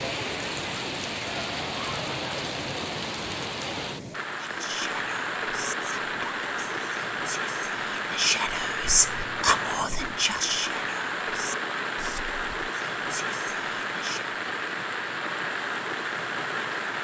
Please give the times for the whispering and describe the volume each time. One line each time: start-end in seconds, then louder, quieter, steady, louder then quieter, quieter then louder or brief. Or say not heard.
4.4-14.3 louder then quieter.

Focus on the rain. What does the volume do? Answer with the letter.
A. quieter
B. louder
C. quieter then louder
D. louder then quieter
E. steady
E.